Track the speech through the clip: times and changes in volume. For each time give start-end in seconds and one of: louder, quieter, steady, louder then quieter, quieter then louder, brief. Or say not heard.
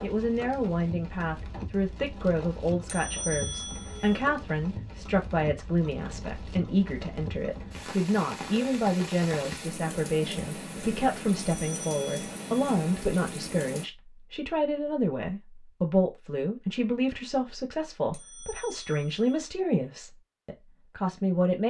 0.0-21.6 steady.